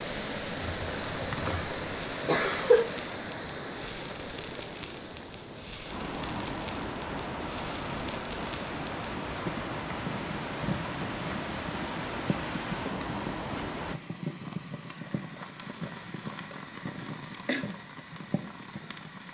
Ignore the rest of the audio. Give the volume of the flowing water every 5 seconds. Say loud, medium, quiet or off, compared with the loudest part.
loud, loud, loud, off.